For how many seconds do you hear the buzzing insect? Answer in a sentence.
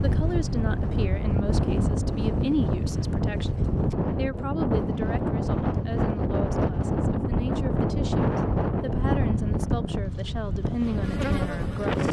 The buzzing insect can be heard for 2 seconds in total.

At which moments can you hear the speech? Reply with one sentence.
You can hear the speech from 0.0 to 12.0 s.